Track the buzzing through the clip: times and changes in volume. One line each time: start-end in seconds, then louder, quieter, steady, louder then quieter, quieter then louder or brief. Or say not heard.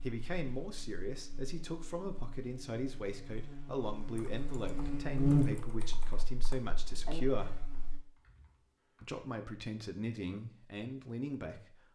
0.0-8.0 louder then quieter.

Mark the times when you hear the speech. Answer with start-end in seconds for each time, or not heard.
0.0-7.6, 9.0-11.8.